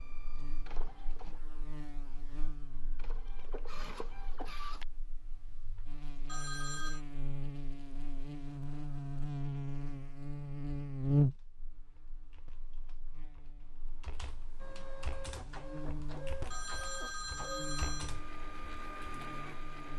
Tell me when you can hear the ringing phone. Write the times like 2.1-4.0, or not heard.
6.2-7.0, 16.5-18.1.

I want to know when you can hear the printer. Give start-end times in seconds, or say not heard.
0.0-4.8, 14.6-19.9.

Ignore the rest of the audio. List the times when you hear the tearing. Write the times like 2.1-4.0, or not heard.
not heard.